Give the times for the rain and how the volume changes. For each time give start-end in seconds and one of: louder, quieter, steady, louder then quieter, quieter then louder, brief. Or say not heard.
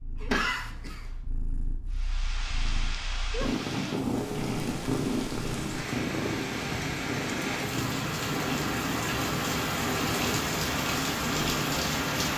1.9-12.3 louder.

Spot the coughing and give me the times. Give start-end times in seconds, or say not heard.
0.2-1.1.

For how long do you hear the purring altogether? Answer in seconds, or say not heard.
12 s.